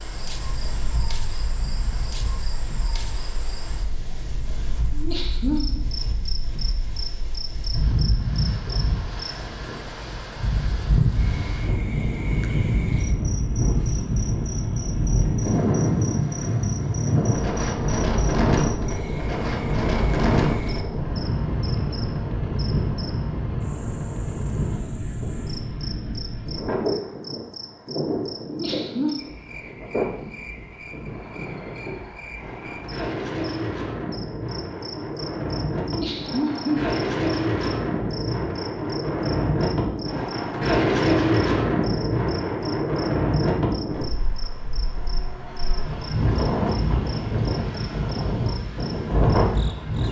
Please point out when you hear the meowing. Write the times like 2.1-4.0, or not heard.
not heard.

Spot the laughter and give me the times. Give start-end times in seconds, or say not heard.
4.9-5.8, 28.4-29.1, 35.8-36.8.